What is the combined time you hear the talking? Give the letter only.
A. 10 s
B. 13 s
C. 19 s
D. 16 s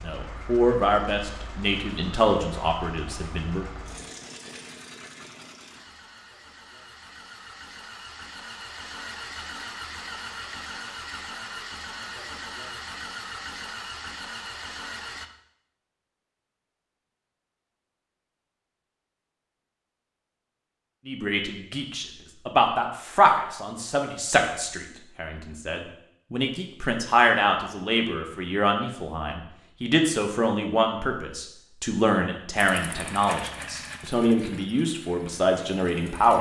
C.